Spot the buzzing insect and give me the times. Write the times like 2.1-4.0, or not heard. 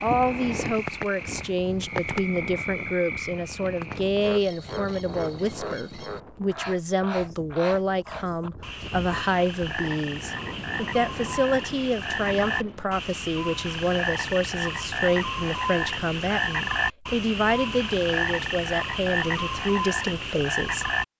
not heard.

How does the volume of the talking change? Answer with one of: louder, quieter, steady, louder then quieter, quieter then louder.
steady.